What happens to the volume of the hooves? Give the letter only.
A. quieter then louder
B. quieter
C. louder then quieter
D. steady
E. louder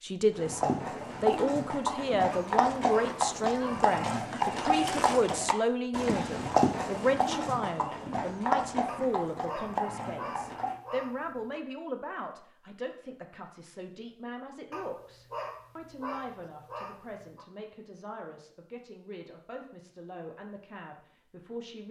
D.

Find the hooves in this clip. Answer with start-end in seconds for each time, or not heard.
0.3-10.8.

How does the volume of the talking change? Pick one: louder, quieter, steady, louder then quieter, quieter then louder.
quieter.